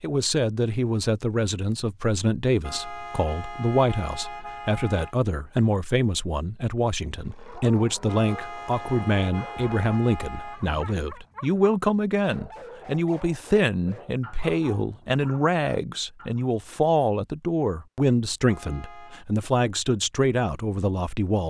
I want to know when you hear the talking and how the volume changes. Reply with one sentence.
The talking can be heard from 0.0 to 21.4 s, at a steady volume.